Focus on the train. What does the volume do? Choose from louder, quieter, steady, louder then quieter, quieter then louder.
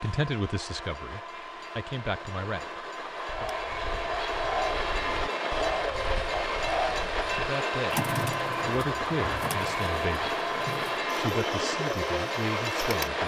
louder.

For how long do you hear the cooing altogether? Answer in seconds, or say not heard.
10 s.